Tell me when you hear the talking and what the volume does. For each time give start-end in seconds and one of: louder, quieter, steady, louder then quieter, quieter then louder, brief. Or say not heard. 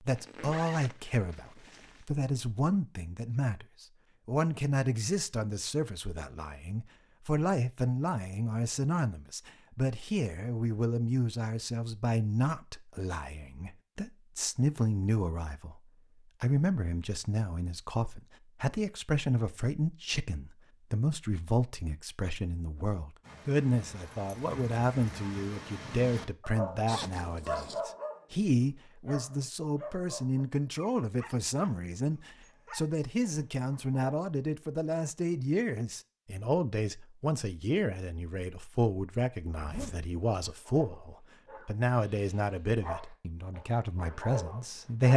0.0-15.8 steady
16.4-45.1 steady.